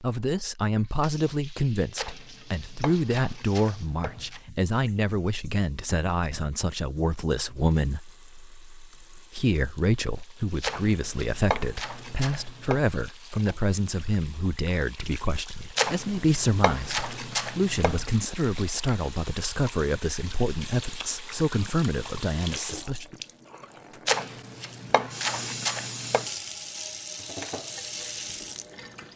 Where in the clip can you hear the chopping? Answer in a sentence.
You can hear the chopping from 1.9 to 4.4 s, from 10.6 to 12.8 s, from 15.8 to 18.1 s and from 24.1 to 26.2 s.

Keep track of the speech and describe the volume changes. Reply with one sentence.
The volume of the speech stays about the same.